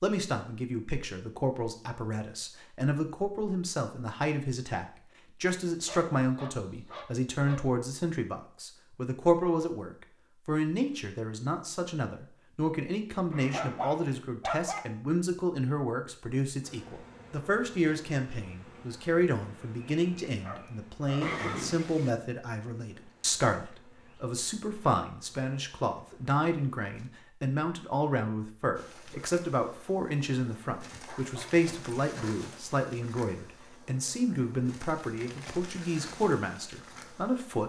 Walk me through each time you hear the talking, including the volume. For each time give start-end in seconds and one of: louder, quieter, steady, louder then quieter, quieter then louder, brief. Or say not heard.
0.0-37.6 steady.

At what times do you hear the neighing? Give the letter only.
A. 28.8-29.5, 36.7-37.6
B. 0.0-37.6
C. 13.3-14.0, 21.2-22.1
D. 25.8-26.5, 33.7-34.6
C.